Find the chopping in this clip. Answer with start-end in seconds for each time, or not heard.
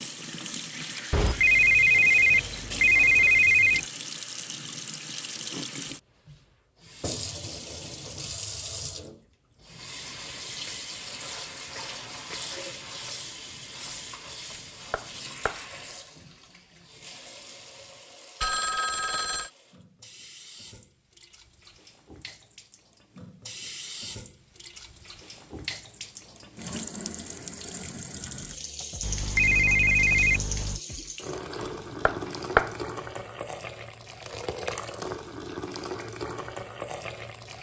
14.5-15.7, 31.6-32.8.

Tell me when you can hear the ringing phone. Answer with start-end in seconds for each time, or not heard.
1.1-3.8, 18.4-19.5, 29.0-30.8.